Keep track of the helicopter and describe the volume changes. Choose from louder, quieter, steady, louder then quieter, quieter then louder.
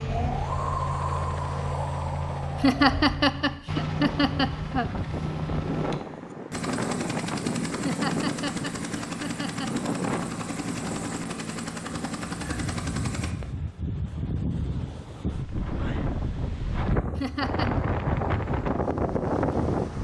steady.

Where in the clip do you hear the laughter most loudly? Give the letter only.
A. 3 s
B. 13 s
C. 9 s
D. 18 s
A.